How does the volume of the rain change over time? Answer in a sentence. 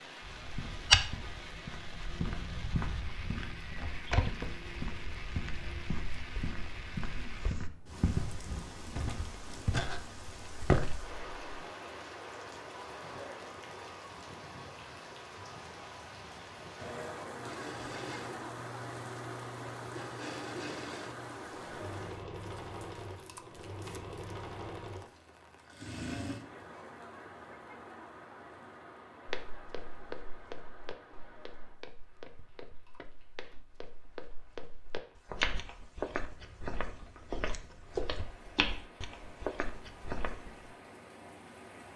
The volume of the rain goes down.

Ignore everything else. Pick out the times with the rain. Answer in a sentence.
The rain can be heard from 0.0 to 41.9 s.